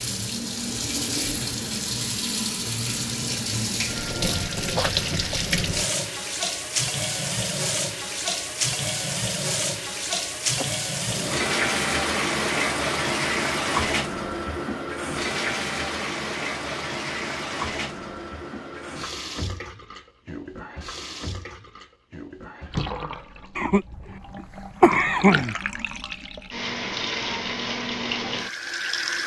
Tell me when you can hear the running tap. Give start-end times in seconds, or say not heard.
0.0-29.2.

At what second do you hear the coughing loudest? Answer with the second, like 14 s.
25 s.